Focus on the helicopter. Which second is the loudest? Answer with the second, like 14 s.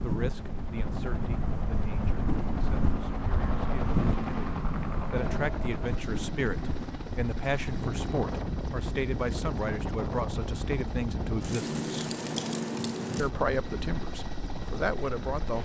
4 s.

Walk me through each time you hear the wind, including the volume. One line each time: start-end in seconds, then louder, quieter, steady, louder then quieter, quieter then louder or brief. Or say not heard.
0.0-15.5 steady.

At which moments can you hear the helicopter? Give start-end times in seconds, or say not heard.
0.1-15.5.